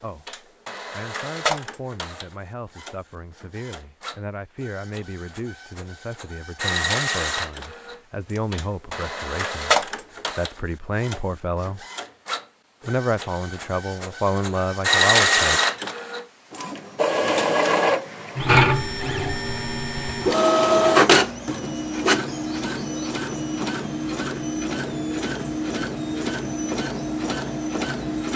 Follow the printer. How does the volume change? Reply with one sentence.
The volume of the printer goes up, then down.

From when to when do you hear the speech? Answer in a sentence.
The speech can be heard from 0.0 to 11.8 s and from 12.8 to 15.6 s.